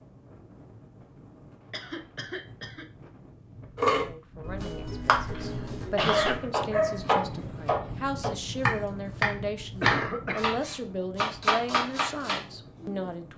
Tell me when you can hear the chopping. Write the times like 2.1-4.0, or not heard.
3.8-13.1.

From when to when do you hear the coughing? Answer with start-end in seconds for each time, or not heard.
1.7-2.9, 4.7-6.4, 9.8-10.6.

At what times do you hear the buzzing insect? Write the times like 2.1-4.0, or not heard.
not heard.